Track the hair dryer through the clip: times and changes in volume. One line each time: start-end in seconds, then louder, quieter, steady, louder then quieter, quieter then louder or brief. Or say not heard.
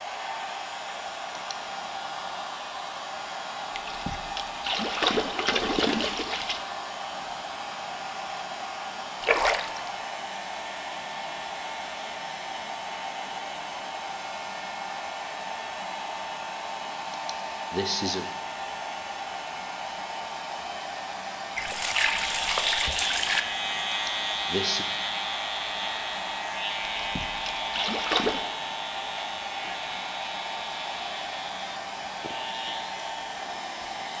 0.0-34.1 steady.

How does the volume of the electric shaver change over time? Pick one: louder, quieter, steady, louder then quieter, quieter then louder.
quieter.